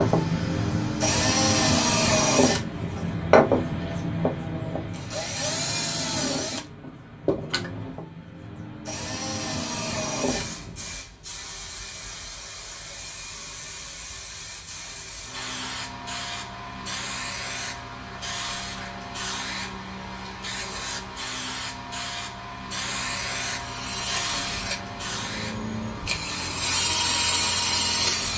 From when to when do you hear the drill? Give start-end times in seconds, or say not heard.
0.0-10.9, 23.5-28.3.